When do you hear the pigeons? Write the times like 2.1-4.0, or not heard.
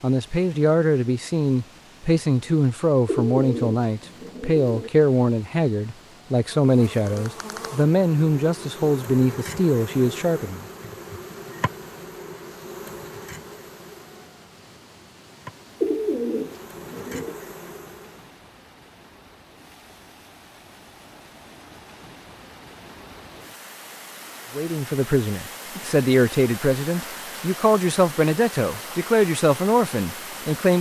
3.0-4.9, 15.8-17.4.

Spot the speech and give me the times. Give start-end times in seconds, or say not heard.
0.0-10.7, 24.6-30.7.